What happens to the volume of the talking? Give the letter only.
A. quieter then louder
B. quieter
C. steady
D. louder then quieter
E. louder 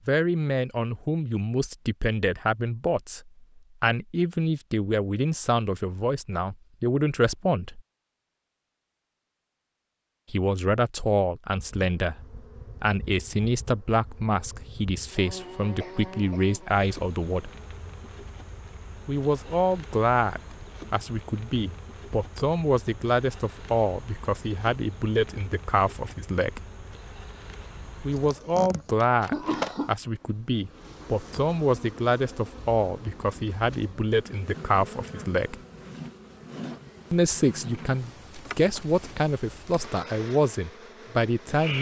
C.